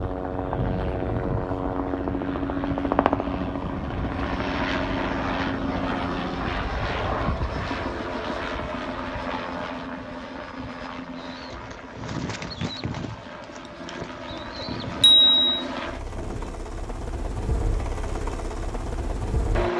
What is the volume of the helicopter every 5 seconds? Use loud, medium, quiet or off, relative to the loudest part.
loud, loud, medium, medium.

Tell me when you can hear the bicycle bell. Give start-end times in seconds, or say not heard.
15.0-15.6.